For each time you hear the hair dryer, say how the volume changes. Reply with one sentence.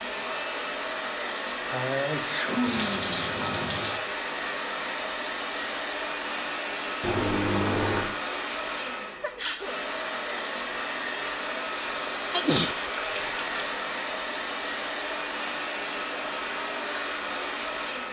You can hear the hair dryer from 0.0 to 18.0 s, at a steady volume.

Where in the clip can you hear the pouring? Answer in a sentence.
You can hear the pouring from 2.6 to 4.0 s, from 7.0 to 8.2 s and from 12.8 to 13.8 s.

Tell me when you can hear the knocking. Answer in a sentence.
You can't hear the knocking here.